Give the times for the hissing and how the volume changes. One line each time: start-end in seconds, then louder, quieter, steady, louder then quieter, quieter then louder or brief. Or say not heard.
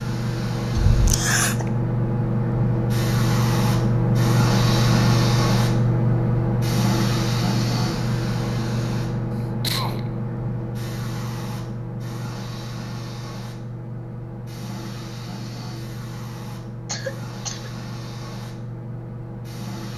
0.0-19.9 quieter.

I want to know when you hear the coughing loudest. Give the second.
1 s.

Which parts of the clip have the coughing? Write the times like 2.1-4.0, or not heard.
0.8-1.6, 9.3-10.2, 16.9-17.7.